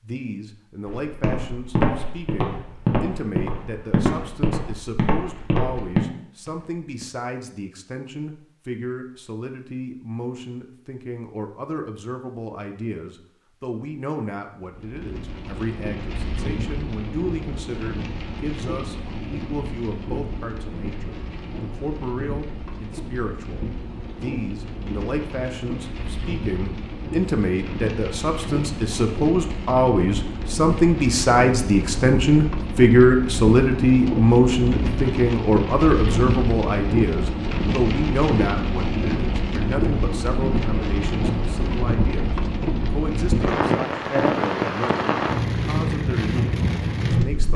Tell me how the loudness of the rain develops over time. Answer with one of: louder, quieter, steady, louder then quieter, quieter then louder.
louder.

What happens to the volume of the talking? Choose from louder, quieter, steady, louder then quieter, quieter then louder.
louder then quieter.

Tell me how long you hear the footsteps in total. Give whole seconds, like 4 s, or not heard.
6 s.